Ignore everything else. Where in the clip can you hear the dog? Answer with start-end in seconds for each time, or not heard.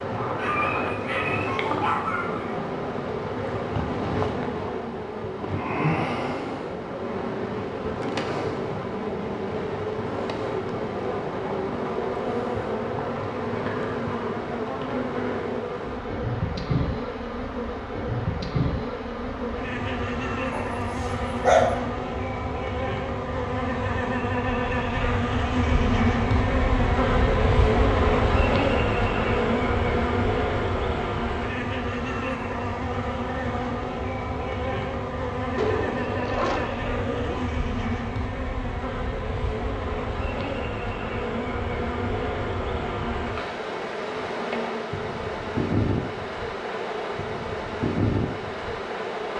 0.3-2.6, 20.5-21.8, 35.5-37.5.